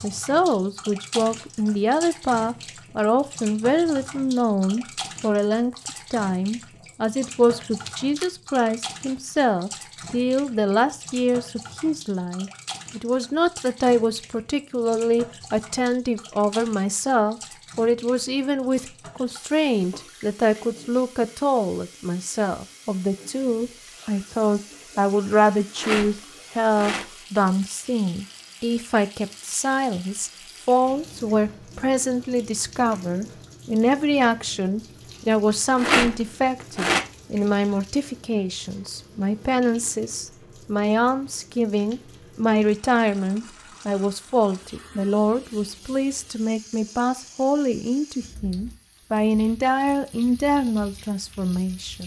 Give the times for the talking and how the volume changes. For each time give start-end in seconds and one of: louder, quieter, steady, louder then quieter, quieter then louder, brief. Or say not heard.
0.0-52.0 steady.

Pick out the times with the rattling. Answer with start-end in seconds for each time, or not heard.
7.6-8.3, 25.8-27.1, 35.8-37.0.